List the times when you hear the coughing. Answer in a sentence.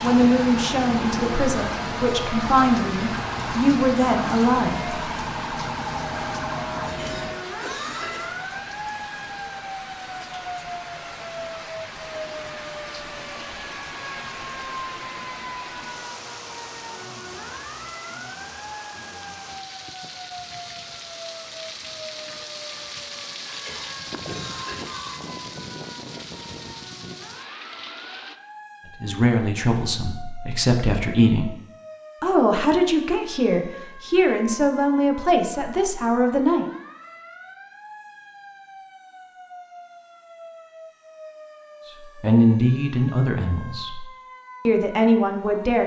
The coughing can be heard from 6.8 to 8.3 s and from 23.4 to 25.2 s.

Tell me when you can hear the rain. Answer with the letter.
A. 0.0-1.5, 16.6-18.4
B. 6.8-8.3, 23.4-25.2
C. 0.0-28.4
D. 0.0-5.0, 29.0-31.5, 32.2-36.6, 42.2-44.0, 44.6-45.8
C.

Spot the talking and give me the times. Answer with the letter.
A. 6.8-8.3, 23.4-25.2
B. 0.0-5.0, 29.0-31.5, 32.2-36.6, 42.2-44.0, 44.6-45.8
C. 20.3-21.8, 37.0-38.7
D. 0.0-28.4
B.